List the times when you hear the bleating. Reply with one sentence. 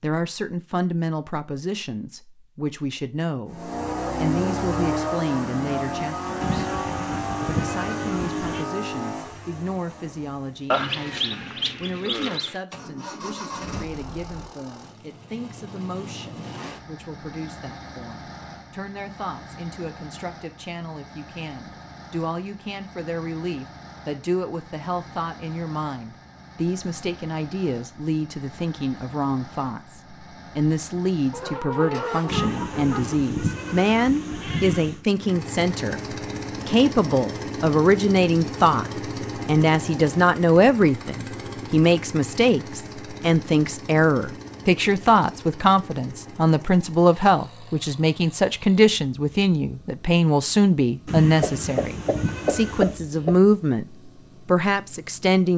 The bleating can be heard from 6.4 to 8.7 s, from 32.2 to 35.0 s and from 51.0 to 53.0 s.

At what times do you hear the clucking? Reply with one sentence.
You can hear the clucking from 10.7 to 12.6 s, from 31.3 to 33.2 s and from 51.4 to 53.4 s.